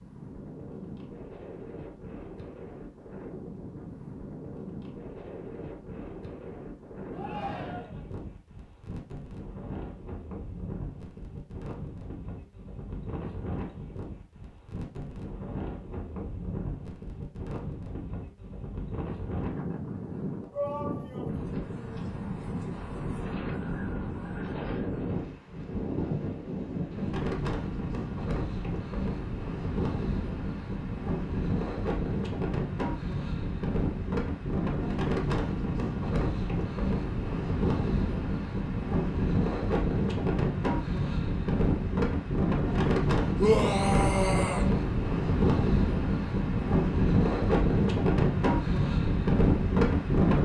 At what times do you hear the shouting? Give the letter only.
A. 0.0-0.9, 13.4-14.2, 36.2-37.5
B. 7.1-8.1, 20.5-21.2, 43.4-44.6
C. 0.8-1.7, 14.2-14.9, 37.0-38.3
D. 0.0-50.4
B.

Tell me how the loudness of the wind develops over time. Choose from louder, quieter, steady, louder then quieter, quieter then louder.
louder.